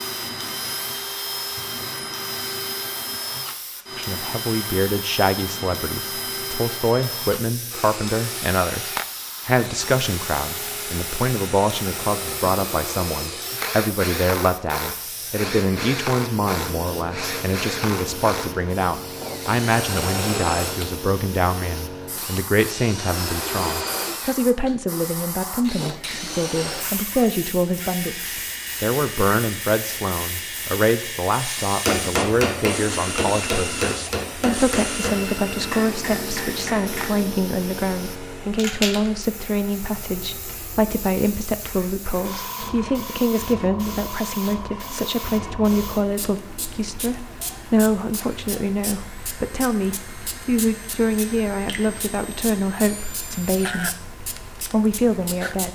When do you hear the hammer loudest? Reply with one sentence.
The volume of the hammer peaks at 32 seconds.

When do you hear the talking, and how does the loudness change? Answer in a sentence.
The talking can be heard from 4.0 to 55.6 s, at a steady volume.